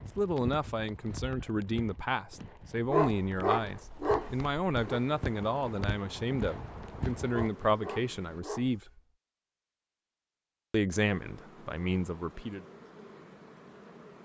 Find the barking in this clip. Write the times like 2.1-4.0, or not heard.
2.9-5.0, 7.3-9.0.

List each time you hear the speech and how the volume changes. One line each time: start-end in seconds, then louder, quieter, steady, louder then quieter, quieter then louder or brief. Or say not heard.
0.1-8.8 steady
10.7-12.7 brief.